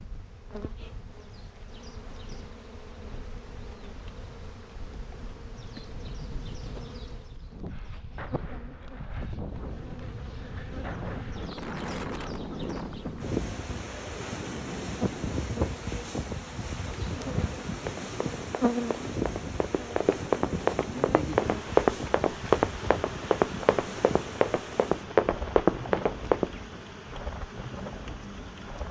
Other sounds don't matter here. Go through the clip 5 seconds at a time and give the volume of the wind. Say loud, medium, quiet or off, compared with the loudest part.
quiet, medium, loud, loud, loud, medium.